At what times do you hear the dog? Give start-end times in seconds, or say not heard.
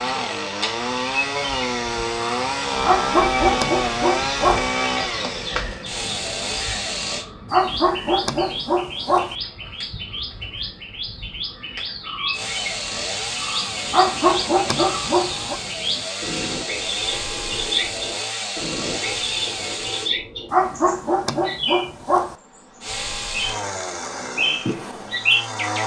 2.8-4.7, 7.5-9.3, 13.9-15.6, 20.5-22.4.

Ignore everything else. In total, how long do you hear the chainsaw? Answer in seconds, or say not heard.
18 s.